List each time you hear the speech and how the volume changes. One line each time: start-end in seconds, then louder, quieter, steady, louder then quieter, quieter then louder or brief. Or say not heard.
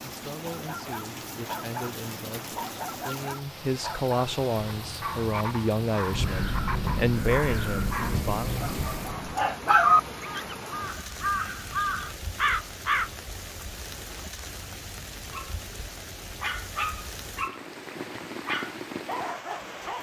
0.0-8.6 louder.